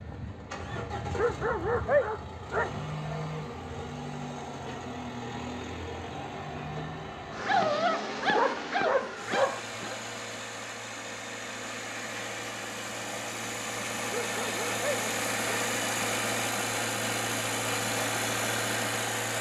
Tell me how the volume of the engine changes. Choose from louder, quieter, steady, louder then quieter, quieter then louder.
louder.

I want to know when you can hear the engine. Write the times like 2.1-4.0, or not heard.
0.0-19.3.